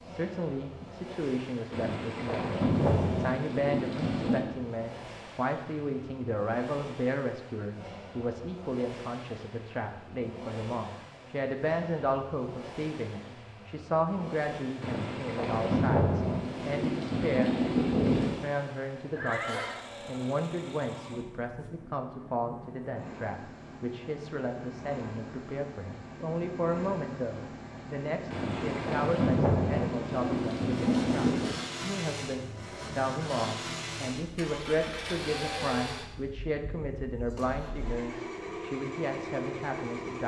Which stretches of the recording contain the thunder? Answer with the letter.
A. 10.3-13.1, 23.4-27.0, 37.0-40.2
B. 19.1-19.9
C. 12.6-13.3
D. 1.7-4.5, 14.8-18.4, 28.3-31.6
D.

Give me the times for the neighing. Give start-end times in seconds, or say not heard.
19.1-19.9.